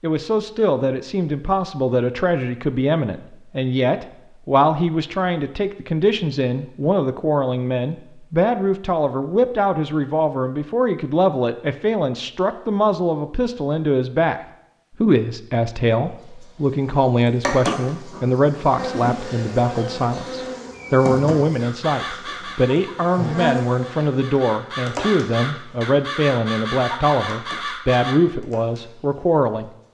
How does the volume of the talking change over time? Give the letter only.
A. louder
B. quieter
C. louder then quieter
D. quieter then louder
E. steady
E.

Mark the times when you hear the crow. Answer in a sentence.
You can hear the crow from 21.6 to 28.2 s.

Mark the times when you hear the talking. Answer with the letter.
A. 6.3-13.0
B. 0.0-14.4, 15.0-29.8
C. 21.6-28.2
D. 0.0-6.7
B.